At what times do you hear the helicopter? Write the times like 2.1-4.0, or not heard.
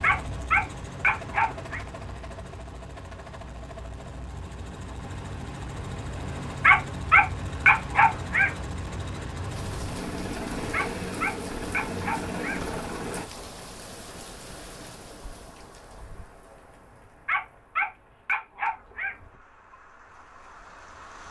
0.0-13.2.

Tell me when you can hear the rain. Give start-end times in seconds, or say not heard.
9.4-21.2.